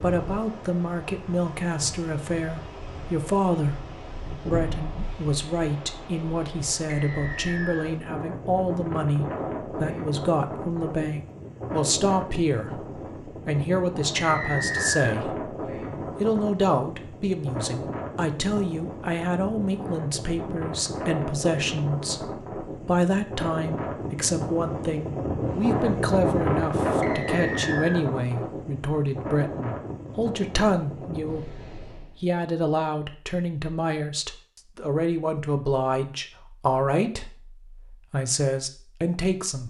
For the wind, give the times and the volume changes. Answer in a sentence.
You can hear the wind from 0.0 to 32.2 s, getting louder.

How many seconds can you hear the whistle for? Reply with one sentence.
You can hear the whistle for 3 seconds altogether.